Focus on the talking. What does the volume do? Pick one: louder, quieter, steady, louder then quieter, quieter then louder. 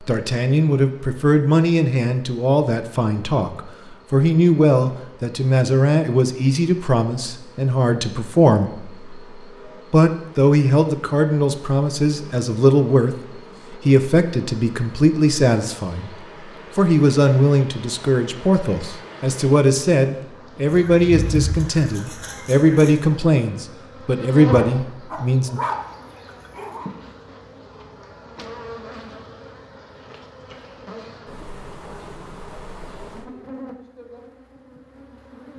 steady.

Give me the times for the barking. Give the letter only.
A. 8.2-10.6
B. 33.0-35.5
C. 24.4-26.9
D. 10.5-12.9
C.